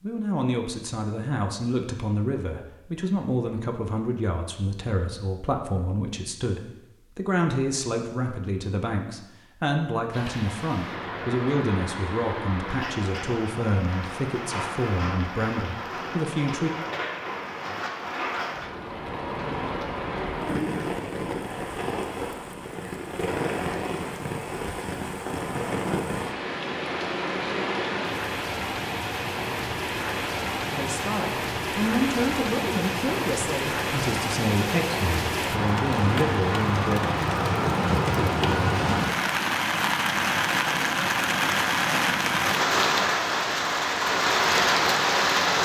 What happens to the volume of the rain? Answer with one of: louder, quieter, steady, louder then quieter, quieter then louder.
louder.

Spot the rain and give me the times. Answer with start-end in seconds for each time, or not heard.
10.1-45.6.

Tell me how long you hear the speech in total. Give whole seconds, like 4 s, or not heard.
23 s.